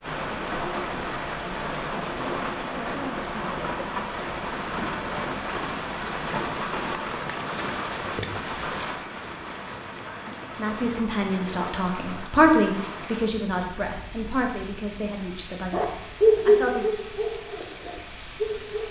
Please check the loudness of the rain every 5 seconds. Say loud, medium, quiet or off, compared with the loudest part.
loud, loud, medium, quiet.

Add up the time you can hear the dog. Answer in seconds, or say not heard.
3 s.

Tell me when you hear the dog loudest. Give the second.
16 s.